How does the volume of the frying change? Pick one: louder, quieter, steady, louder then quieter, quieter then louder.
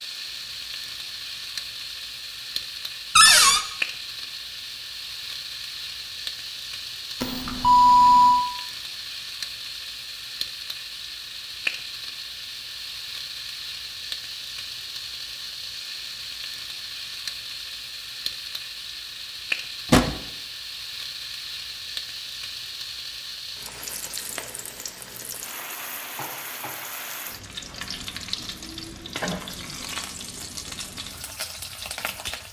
steady.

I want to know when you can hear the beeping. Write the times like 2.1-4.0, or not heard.
7.2-8.4.